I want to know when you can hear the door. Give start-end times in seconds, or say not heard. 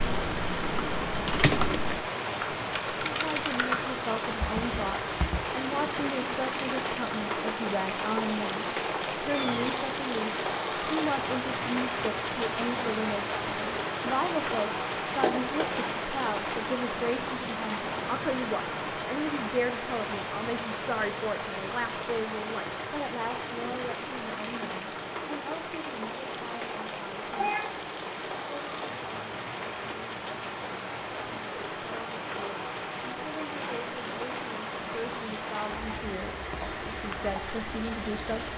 15.2-15.7.